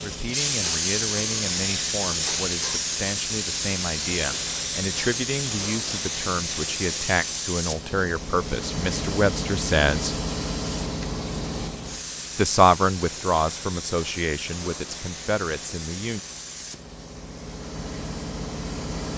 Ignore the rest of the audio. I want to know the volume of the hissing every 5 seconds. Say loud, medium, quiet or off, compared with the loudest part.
loud, loud, medium, medium.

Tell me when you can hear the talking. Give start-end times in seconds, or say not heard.
0.0-10.2, 12.3-16.2.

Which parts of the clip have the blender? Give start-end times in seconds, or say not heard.
not heard.